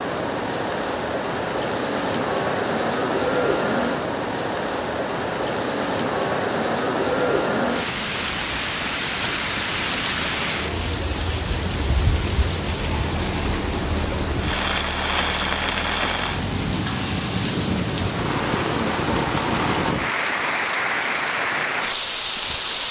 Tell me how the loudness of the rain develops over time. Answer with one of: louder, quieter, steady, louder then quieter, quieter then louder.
steady.